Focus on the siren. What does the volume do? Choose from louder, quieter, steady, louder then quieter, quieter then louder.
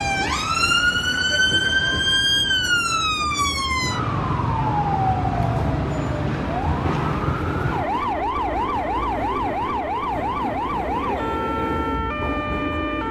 quieter.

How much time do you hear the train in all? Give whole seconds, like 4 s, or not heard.
13 s.